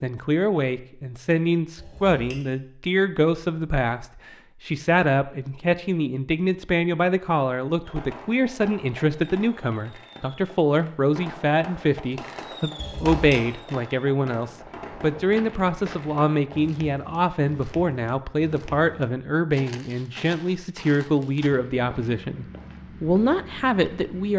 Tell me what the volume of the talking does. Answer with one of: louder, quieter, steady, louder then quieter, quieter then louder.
steady.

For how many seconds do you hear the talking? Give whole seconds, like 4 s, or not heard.
24 s.